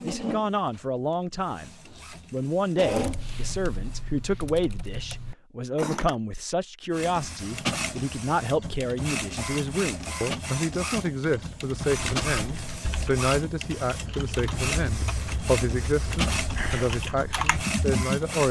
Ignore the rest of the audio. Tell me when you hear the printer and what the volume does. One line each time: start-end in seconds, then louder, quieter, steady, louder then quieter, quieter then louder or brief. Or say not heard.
0.0-4.0 louder
6.9-18.4 steady.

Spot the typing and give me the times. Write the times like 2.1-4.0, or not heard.
2.9-6.2, 11.7-18.2.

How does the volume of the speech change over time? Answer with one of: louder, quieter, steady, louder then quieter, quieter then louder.
steady.